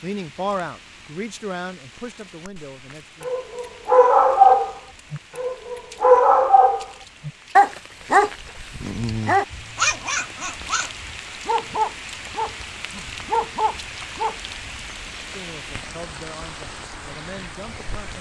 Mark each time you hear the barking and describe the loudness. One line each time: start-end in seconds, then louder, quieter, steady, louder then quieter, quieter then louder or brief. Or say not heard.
3.2-14.3 quieter.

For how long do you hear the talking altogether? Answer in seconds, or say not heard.
6 s.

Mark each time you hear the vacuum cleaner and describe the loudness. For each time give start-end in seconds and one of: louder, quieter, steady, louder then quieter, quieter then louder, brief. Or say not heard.
not heard.